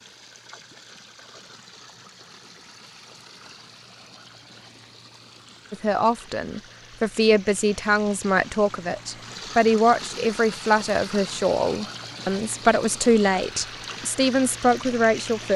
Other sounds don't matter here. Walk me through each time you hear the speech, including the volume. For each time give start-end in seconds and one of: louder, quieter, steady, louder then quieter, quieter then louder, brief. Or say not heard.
5.7-15.5 steady.